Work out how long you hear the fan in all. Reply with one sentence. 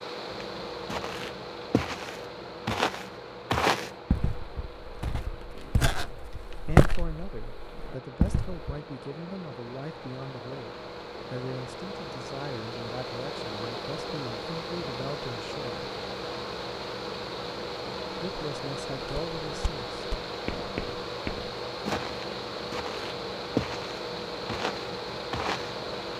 The fan can be heard for 26 seconds in total.